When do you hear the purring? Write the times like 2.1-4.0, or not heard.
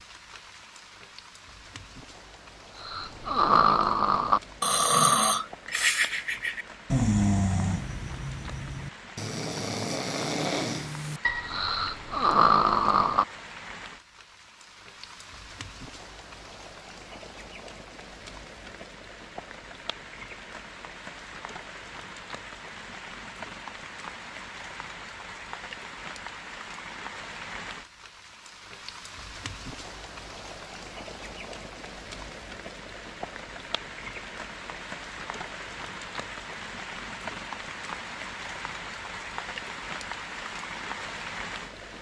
not heard.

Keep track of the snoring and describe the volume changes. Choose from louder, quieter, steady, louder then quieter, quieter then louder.
quieter then louder.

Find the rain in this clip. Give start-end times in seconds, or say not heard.
0.0-41.9.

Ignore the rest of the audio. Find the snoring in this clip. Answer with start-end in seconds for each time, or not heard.
2.8-13.2.